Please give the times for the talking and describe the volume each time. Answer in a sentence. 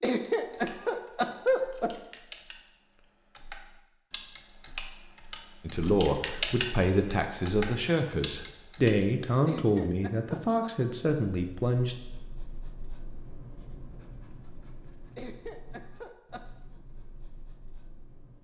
The talking can be heard from 5.6 to 11.9 s, at a steady volume.